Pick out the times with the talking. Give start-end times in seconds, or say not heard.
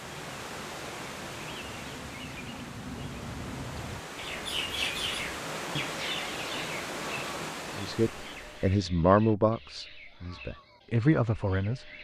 7.8-11.9.